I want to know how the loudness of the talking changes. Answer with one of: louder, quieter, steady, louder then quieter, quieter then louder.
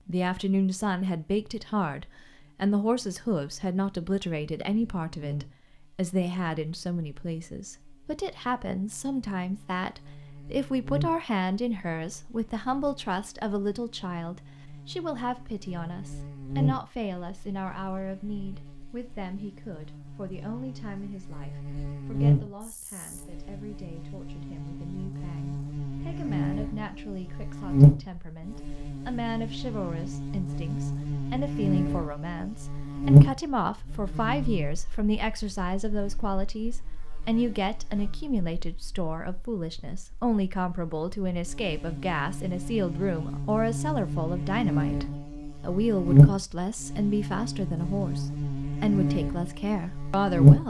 quieter then louder.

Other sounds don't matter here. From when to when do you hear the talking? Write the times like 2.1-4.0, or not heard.
0.0-50.6.